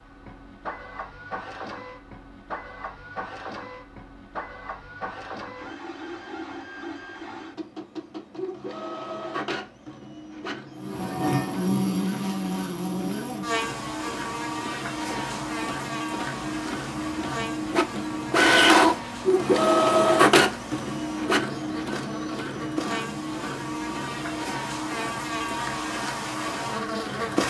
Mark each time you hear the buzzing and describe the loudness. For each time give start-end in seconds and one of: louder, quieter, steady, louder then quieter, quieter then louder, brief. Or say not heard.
10.8-27.4 quieter then louder.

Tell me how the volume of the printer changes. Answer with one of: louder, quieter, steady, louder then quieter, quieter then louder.
louder then quieter.